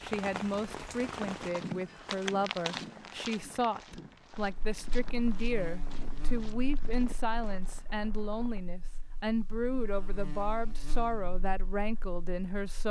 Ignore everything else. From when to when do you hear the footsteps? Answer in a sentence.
You can hear the footsteps from 1.1 to 7.9 s.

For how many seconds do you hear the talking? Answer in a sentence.
The talking can be heard for 13 seconds in total.